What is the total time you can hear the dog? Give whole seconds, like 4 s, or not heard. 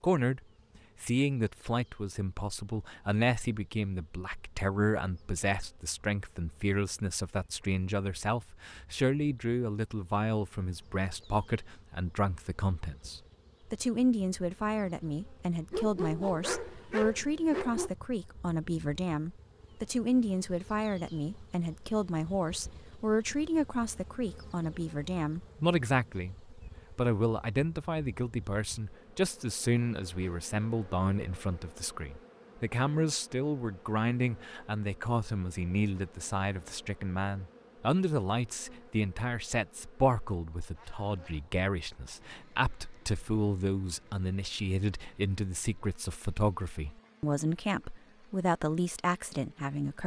2 s.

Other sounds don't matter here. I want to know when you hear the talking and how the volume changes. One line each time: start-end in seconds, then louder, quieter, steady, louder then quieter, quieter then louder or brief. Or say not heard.
0.0-0.4 brief
1.0-50.0 steady.